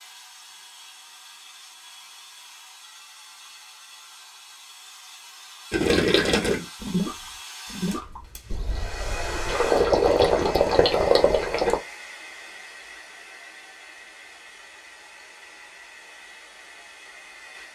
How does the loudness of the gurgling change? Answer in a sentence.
The volume of the gurgling goes down, then up.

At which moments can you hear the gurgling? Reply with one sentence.
The gurgling can be heard from 5.7 to 11.8 s.